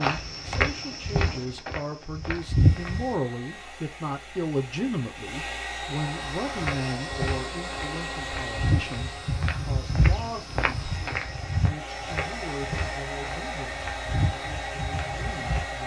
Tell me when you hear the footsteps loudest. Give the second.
3 s.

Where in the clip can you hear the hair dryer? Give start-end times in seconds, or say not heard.
2.3-15.8.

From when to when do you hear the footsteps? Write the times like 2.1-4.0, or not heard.
0.0-3.1, 6.5-15.7.